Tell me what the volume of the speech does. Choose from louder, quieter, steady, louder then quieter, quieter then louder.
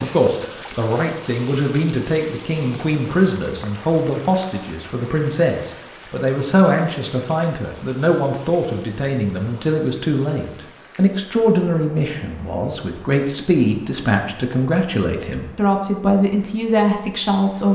steady.